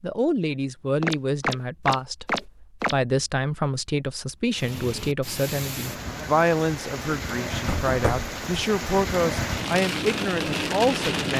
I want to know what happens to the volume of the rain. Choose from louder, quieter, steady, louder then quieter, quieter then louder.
louder.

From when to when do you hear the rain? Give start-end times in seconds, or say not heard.
4.5-11.3.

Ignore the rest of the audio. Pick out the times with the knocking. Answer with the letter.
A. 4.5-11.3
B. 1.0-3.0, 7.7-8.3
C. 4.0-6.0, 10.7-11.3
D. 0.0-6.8
B.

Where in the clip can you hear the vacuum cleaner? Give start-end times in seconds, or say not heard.
not heard.